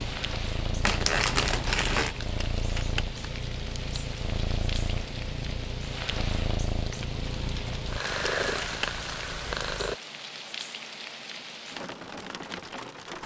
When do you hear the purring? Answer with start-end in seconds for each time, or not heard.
0.0-9.9.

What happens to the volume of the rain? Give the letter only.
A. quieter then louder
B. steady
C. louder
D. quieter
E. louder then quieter
B.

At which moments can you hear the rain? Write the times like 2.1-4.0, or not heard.
0.0-13.2.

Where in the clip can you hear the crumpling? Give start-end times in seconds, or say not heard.
0.8-2.1, 8.1-8.8.